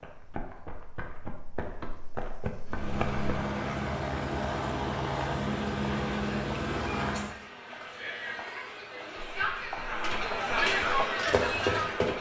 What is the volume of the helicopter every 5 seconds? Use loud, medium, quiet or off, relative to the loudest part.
loud, loud, off.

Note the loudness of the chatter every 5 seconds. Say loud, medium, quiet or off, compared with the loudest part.
off, medium, loud.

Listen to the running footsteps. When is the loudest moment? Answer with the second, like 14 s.
12 s.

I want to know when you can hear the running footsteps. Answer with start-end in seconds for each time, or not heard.
0.0-3.2, 9.2-12.1.